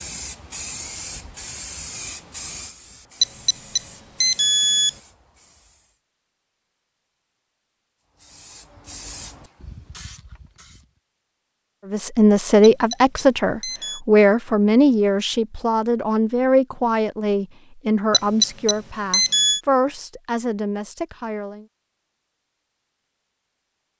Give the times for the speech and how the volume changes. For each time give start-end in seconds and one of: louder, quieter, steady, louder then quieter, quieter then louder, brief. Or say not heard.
11.9-21.6 quieter.